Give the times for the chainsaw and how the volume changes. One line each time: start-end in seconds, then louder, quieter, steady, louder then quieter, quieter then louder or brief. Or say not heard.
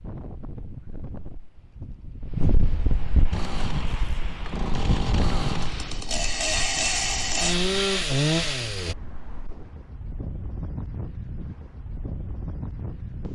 3.3-8.9 louder.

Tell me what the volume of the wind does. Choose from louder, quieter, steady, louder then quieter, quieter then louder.
quieter then louder.